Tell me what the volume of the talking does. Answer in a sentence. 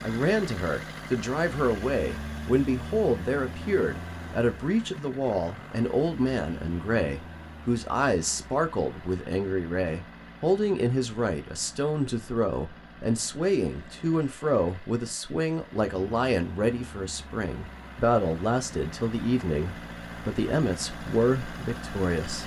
The loudness of the talking stays about the same.